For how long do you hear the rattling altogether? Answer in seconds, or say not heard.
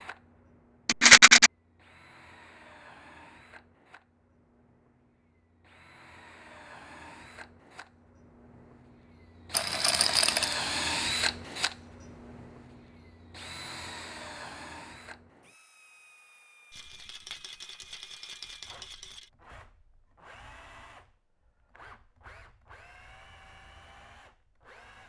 4 s.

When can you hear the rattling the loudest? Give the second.
1 s.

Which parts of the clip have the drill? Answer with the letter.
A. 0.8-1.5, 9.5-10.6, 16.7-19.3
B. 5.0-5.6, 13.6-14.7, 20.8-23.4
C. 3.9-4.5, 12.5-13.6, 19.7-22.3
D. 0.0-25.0
D.